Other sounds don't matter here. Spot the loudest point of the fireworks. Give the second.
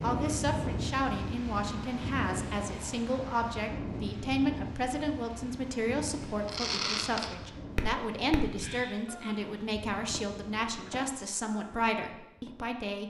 7 s.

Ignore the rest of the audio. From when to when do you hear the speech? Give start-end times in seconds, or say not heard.
0.0-13.0.